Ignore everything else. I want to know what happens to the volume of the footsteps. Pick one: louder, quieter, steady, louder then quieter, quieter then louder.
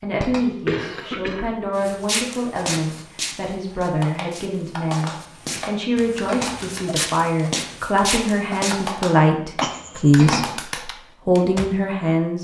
quieter then louder.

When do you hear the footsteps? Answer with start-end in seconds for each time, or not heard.
1.8-8.9.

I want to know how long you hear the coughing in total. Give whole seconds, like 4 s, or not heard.
2 s.